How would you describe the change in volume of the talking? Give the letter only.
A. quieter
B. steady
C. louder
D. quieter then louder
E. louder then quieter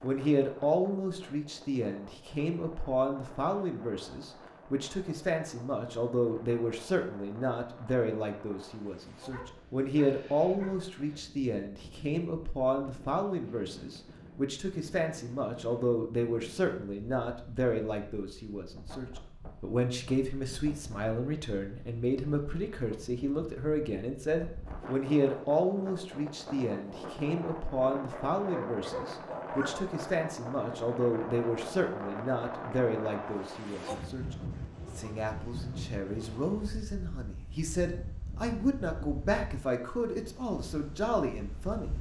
B.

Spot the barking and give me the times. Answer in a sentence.
You can hear the barking from 9.3 to 10.8 s and from 28.1 to 29.9 s.